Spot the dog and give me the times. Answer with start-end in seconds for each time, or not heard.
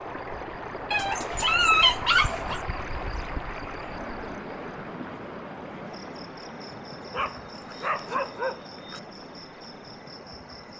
0.9-2.6, 7.1-9.0.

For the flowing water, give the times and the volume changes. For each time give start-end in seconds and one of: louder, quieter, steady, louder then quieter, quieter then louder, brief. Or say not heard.
0.0-10.7 quieter.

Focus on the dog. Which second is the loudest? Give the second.
2 s.